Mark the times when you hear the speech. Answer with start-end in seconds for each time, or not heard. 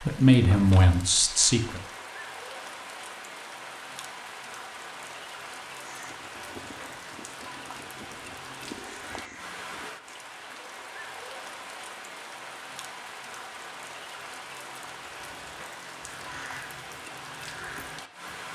0.0-1.8.